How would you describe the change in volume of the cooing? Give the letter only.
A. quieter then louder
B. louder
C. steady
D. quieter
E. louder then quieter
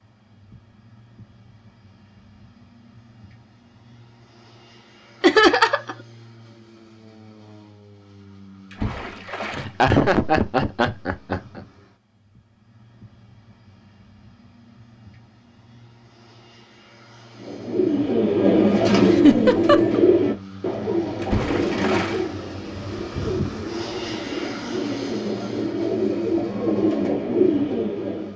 A.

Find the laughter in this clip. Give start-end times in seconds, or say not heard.
5.2-6.0, 9.5-11.6, 19.1-20.0.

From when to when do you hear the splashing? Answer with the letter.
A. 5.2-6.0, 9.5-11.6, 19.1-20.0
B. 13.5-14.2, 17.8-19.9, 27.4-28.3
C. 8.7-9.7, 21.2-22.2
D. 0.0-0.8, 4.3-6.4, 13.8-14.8
C.